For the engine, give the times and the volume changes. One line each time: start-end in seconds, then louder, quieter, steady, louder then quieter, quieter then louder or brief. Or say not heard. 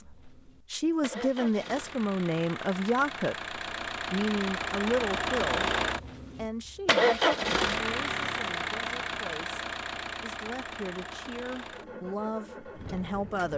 0.0-13.5 louder then quieter.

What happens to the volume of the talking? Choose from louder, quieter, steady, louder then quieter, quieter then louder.
quieter then louder.